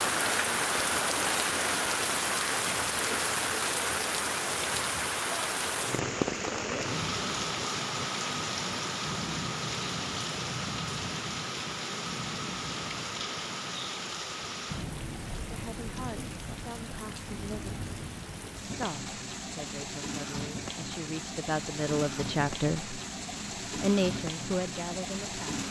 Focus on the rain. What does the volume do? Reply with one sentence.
The loudness of the rain goes down.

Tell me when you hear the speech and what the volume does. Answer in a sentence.
You can hear the speech briefly from 15.4 to 17.8 s; from 18.6 to 22.9 s, getting louder; and briefly from 23.8 to 25.6 s.